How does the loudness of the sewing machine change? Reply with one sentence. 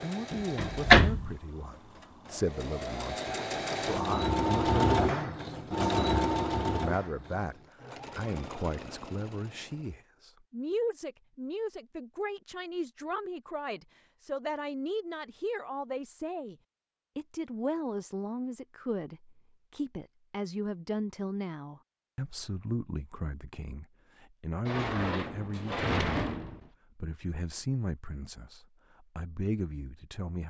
The loudness of the sewing machine goes up, then down.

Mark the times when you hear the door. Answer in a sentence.
The door can be heard from 0.3 to 1.3 s and from 24.6 to 26.6 s.